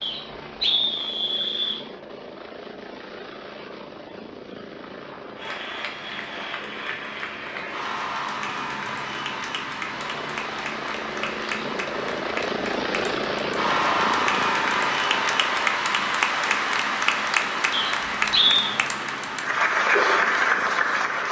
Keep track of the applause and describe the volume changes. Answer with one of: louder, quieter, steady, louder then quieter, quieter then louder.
louder.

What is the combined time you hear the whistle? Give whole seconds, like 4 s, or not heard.
3 s.